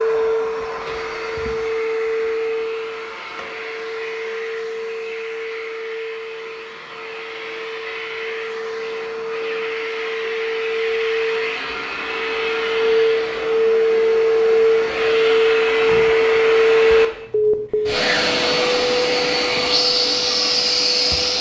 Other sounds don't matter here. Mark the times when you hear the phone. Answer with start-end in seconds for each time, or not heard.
0.8-1.6, 17.3-17.9.